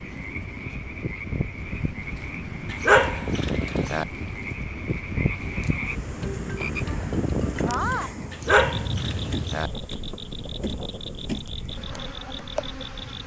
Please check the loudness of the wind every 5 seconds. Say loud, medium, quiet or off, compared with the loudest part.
loud, loud, medium.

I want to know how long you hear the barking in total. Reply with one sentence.
You can hear the barking for 3 seconds altogether.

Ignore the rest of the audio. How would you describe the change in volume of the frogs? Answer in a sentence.
The loudness of the frogs goes up, then down.